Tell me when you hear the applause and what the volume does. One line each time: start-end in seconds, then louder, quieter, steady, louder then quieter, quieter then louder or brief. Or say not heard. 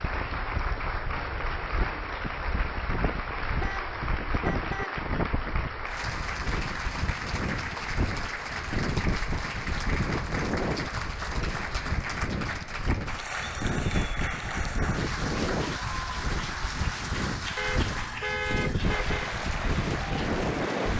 0.0-20.9 steady.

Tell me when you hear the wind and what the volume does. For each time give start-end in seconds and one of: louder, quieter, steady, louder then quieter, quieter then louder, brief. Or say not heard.
0.0-20.9 louder.